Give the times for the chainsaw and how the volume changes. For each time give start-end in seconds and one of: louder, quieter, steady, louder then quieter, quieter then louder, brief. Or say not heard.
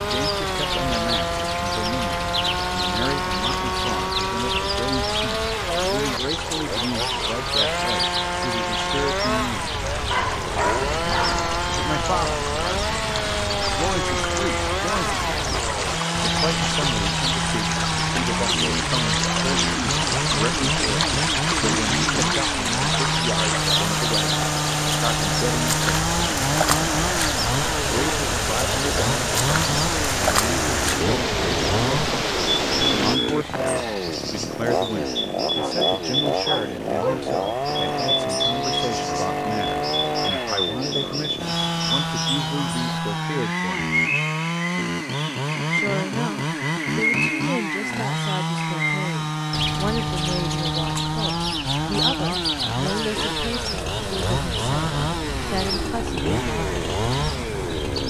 0.0-58.0 steady.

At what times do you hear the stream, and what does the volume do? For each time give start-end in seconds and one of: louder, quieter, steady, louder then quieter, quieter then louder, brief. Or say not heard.
0.1-33.2 louder.